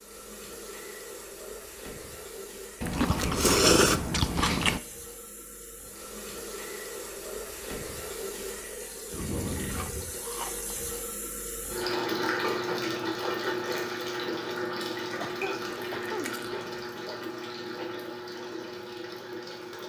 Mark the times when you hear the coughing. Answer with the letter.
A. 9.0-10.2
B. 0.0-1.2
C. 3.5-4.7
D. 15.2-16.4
D.